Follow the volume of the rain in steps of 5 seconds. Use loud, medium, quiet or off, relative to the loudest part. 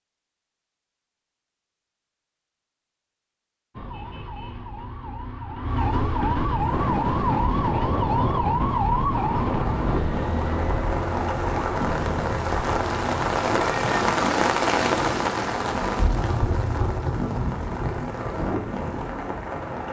off, medium, loud, loud.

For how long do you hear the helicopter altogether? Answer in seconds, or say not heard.
not heard.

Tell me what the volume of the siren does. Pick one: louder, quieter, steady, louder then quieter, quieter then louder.
louder then quieter.